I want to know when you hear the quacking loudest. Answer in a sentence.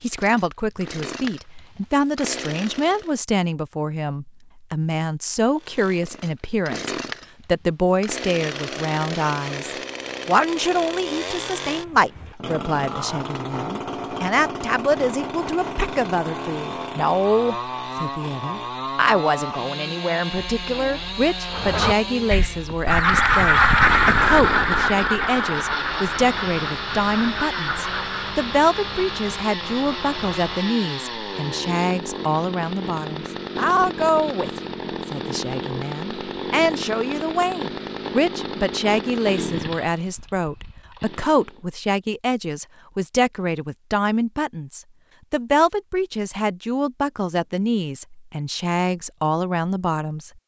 The volume of the quacking peaks at 24 seconds.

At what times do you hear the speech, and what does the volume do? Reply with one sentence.
The speech can be heard from 0.0 to 50.4 s, at a steady volume.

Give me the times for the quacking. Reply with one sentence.
You can hear the quacking from 21.5 to 28.4 s.